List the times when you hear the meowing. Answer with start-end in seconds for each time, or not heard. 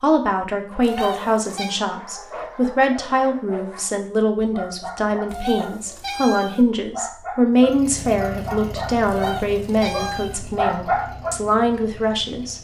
0.8-1.8, 5.3-6.8, 9.1-10.5.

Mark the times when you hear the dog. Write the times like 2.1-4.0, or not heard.
0.8-11.3.